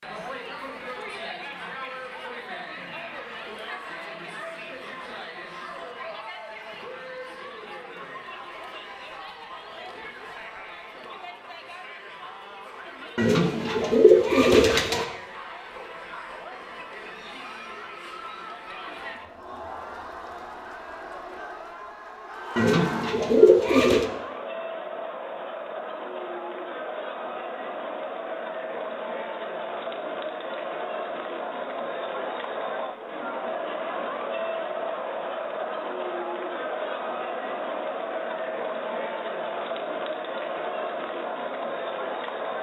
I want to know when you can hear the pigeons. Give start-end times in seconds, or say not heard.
13.2-15.1, 22.6-24.1.